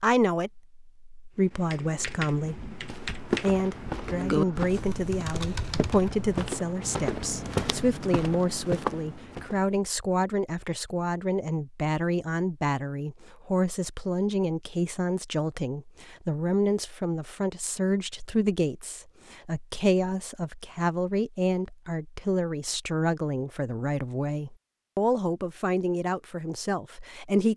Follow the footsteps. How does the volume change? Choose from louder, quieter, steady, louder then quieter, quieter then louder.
quieter then louder.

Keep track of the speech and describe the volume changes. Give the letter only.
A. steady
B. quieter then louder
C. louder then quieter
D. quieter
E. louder
A.